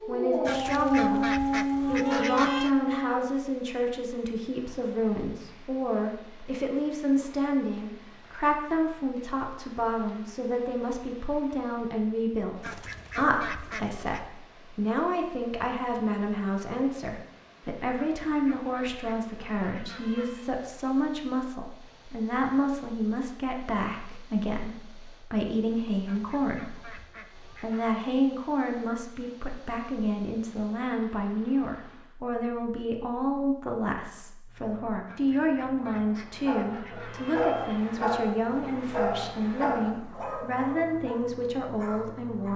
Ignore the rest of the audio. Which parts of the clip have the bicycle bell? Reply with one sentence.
The bicycle bell can't be heard in this clip.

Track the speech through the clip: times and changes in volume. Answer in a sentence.
The speech can be heard from 0.1 to 42.5 s, at a steady volume.